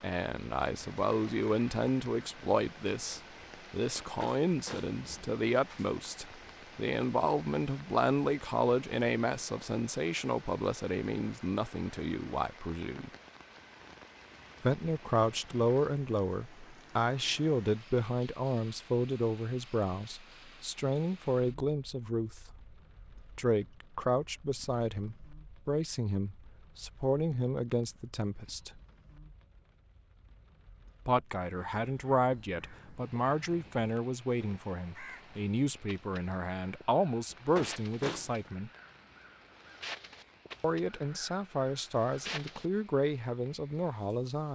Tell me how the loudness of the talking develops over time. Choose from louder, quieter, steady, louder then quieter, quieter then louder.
steady.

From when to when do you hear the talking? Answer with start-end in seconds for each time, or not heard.
0.0-13.1, 14.6-28.8, 31.1-38.7, 40.6-44.4.